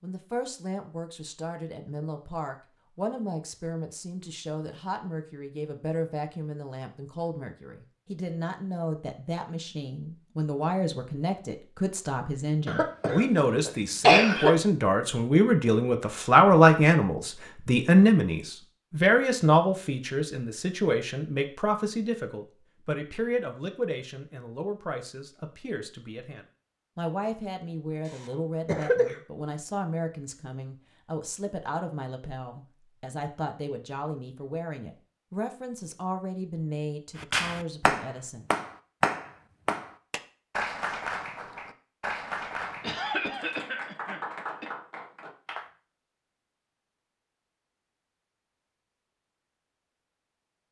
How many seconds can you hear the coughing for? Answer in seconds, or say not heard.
5 s.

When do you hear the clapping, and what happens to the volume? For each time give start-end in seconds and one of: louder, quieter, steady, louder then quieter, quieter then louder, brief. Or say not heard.
37.1-45.7 quieter.